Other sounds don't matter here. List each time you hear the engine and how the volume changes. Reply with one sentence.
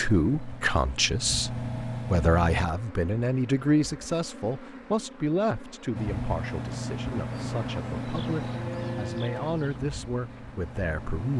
The engine can be heard briefly from 0.0 to 2.7 s; and from 6.0 to 11.3 s, getting quieter.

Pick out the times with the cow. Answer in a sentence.
You can hear the cow from 8.3 to 9.8 s.